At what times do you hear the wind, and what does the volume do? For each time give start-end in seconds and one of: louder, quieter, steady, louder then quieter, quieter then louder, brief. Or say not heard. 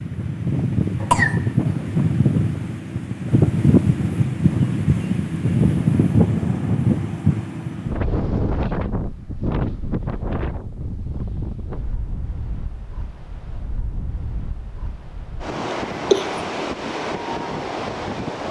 0.0-18.4 quieter then louder.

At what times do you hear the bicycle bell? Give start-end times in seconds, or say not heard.
not heard.